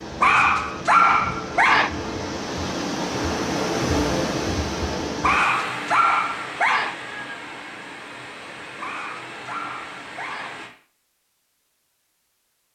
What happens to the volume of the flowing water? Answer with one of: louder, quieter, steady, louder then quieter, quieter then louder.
louder then quieter.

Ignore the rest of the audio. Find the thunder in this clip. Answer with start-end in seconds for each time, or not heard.
not heard.